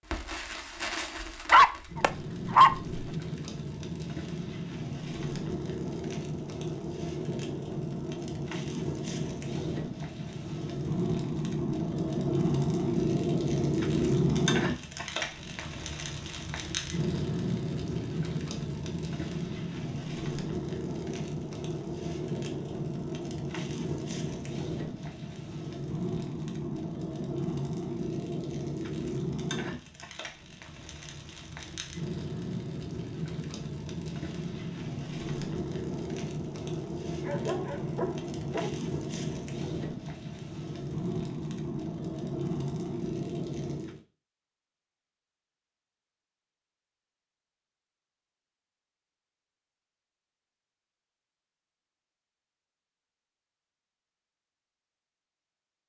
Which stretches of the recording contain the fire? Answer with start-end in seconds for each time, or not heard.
0.0-44.0.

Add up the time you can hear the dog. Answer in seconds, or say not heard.
3 s.